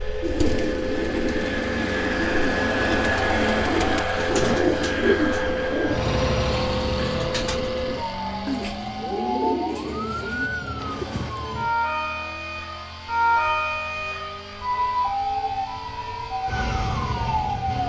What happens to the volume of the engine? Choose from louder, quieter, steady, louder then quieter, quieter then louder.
quieter.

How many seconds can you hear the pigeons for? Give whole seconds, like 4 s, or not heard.
11 s.